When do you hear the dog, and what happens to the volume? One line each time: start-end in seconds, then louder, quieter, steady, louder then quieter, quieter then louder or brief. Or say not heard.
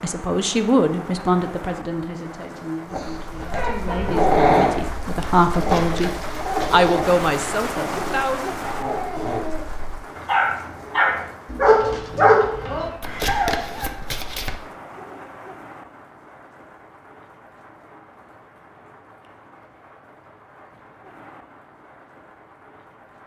2.9-13.9 quieter then louder.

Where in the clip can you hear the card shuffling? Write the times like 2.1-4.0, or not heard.
5.5-6.8, 13.0-14.6.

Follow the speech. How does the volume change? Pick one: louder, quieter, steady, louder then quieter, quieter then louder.
quieter then louder.